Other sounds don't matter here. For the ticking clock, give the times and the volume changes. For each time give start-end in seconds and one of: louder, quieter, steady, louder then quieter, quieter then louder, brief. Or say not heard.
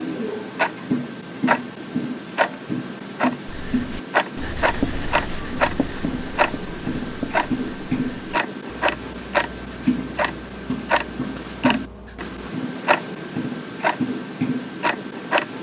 0.0-15.5 steady.